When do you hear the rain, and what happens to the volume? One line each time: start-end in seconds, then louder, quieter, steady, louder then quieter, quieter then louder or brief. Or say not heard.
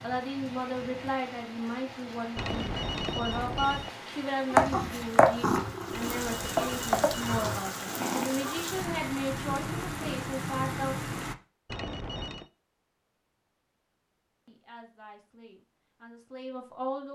0.0-11.3 louder.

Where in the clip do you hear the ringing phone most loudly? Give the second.
3 s.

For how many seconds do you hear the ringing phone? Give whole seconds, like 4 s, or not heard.
4 s.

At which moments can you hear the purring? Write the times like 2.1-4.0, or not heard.
4.5-8.3.